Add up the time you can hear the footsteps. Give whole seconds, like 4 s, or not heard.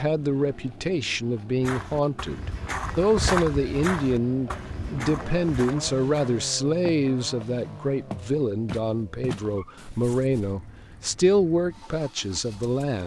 9 s.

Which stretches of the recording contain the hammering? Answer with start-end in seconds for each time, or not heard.
not heard.